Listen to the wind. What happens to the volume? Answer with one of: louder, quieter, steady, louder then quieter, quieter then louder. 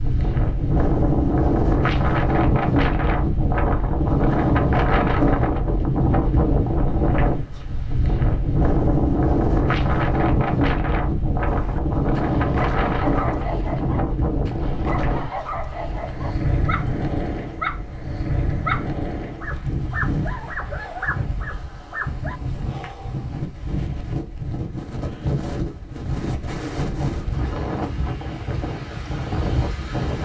quieter.